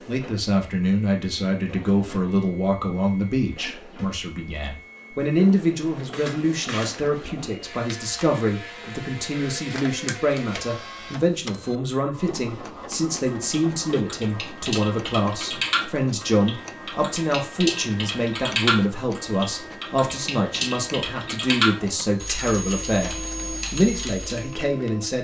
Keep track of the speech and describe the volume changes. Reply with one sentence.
The loudness of the speech stays about the same.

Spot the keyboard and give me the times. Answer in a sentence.
You can hear the keyboard from 13.2 to 24.6 s.